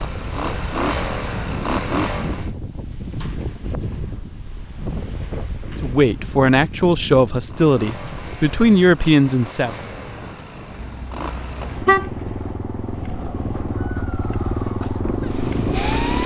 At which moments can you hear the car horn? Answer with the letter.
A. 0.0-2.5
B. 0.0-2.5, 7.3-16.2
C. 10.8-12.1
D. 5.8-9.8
C.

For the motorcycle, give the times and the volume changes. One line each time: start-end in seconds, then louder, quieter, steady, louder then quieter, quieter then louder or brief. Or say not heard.
0.0-2.5 brief
7.3-16.2 louder.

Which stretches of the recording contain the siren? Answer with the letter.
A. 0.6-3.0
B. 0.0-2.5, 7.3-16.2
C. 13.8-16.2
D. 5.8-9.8
C.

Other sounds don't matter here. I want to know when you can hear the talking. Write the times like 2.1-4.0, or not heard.
5.8-9.8.